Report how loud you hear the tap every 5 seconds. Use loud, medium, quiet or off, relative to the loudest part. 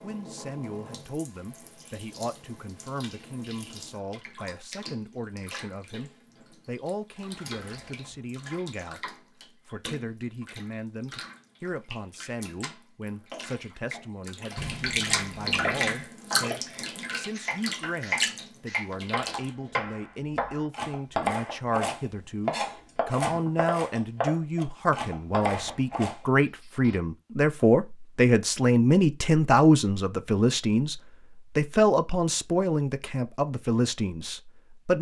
quiet, quiet, medium, loud, off, off, off.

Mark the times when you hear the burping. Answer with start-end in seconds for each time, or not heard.
not heard.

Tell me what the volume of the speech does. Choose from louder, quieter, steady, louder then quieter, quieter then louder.
louder.